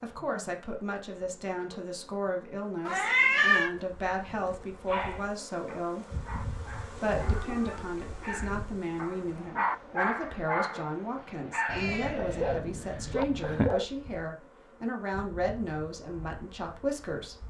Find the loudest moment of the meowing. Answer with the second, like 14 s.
3 s.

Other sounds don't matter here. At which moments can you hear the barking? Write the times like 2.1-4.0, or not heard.
4.8-13.8.